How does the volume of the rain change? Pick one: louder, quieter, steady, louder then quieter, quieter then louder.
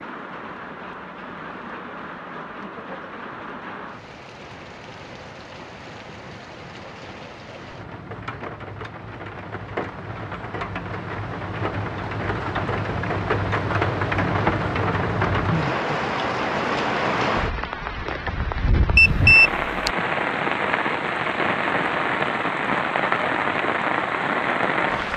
louder.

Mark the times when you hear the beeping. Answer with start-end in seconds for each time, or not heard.
18.9-19.9.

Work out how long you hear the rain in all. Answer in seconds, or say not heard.
25 s.